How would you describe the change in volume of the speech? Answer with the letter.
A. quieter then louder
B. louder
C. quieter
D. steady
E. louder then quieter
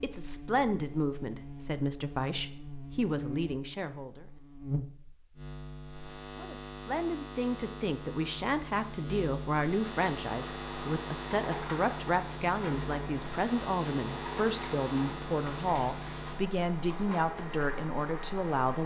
D.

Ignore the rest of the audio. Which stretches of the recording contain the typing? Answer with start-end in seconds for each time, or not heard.
not heard.